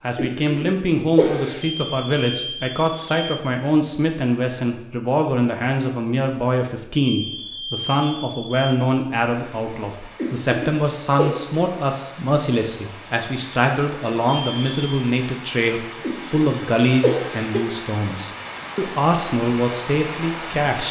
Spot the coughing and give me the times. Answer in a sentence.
You can hear the coughing from 0.1 to 1.6 s, from 10.2 to 11.3 s and from 16.0 to 17.6 s.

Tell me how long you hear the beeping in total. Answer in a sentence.
You can hear the beeping for 4 seconds altogether.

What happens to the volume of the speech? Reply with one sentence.
The loudness of the speech stays about the same.